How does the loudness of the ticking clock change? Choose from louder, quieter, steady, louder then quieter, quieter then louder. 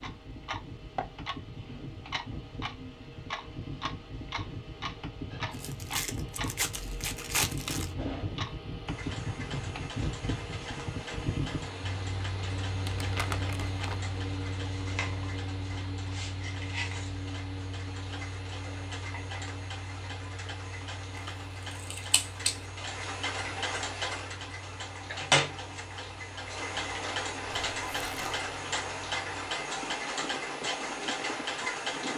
louder.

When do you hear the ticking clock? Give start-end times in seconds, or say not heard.
0.0-32.1.